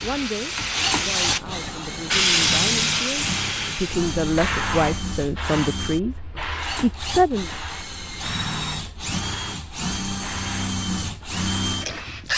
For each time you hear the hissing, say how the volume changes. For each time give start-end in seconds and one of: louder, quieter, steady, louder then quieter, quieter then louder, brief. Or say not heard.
0.0-12.3 quieter.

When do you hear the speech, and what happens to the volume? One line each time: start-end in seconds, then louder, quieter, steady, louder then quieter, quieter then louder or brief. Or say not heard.
0.0-6.2 louder
6.8-7.5 brief.